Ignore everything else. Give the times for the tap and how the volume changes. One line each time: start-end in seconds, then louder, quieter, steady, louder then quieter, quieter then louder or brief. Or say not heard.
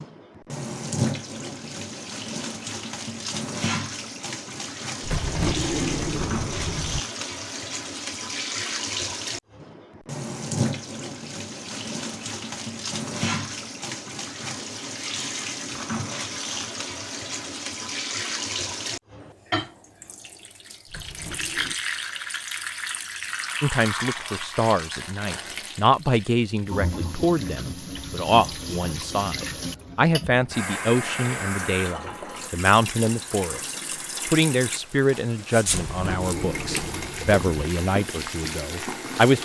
0.0-39.4 steady.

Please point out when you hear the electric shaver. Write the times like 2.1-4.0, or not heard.
not heard.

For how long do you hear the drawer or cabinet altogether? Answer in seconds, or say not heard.
5 s.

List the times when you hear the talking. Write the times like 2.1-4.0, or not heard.
23.6-39.4.